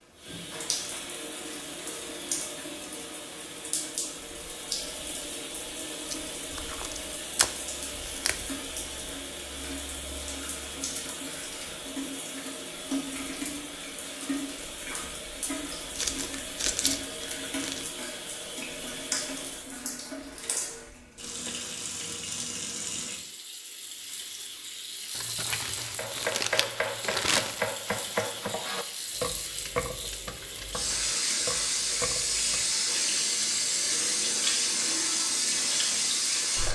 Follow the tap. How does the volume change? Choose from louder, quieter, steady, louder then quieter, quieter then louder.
louder.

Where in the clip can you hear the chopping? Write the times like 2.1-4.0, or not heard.
25.9-32.7.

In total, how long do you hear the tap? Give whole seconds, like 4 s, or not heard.
37 s.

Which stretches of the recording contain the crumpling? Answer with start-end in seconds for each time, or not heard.
6.1-8.3, 15.9-17.9, 25.1-27.6.